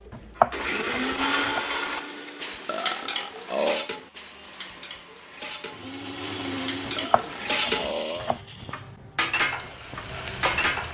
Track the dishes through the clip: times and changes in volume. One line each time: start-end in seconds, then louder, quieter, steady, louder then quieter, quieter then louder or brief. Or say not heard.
0.3-10.8 quieter then louder.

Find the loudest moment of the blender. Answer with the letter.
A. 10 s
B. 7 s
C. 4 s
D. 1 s
D.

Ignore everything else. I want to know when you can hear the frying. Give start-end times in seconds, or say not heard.
9.4-10.8.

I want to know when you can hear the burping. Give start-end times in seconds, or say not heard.
2.6-3.9, 7.0-8.4.